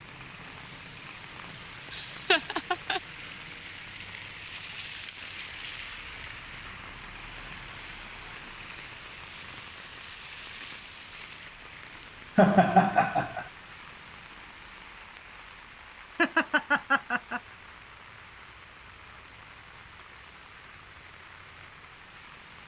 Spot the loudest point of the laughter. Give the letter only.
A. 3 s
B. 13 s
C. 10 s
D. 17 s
B.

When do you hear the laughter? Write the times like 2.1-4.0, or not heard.
1.9-3.0, 12.3-13.4, 16.1-17.4.